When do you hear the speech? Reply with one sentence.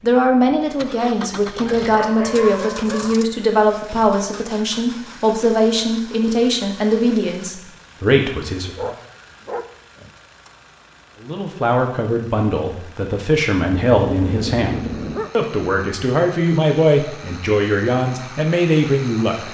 The speech can be heard from 0.0 to 8.9 s and from 11.2 to 19.4 s.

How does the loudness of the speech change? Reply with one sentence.
The loudness of the speech stays about the same.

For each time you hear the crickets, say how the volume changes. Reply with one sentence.
The crickets can't be heard in this clip.